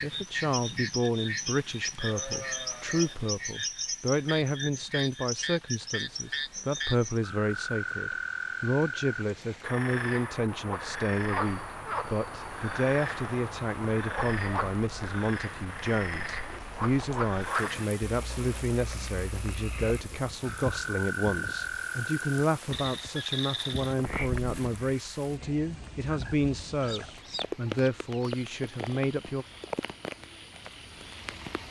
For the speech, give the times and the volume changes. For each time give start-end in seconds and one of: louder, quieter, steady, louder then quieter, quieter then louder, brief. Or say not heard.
0.0-29.4 steady.